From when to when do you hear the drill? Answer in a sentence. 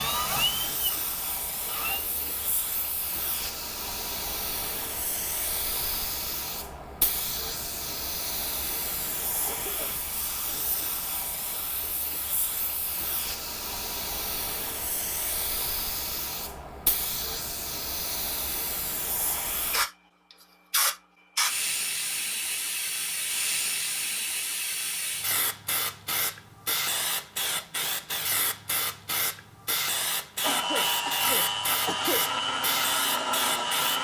The drill can be heard from 0.0 to 2.5 s and from 30.4 to 33.9 s.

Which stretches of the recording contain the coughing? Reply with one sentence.
The coughing can be heard from 9.4 to 10.2 s and from 30.5 to 32.2 s.